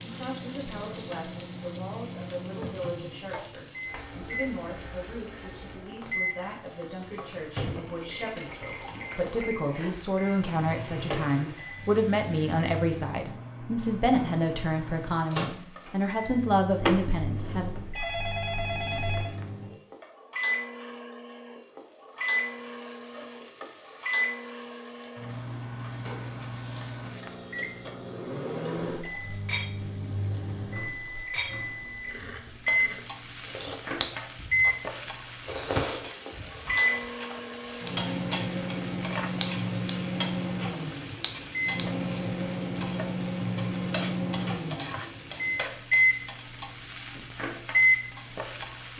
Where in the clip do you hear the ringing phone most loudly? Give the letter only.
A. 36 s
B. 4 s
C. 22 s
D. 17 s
D.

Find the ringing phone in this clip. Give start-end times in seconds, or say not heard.
16.8-19.4.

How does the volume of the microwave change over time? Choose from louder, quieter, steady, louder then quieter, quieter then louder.
louder.